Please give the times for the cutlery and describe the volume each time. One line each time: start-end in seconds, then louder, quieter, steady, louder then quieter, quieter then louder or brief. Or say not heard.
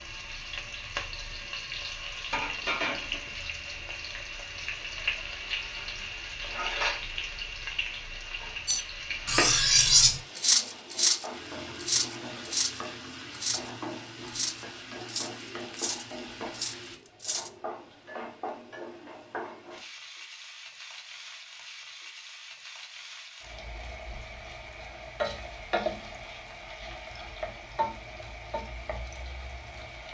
8.7-17.5 quieter.